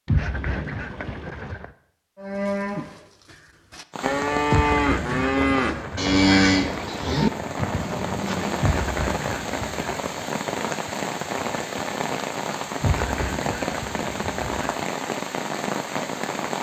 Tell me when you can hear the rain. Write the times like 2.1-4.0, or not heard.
3.9-16.5.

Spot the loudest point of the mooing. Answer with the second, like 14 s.
6 s.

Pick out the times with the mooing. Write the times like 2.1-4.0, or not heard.
2.1-8.7.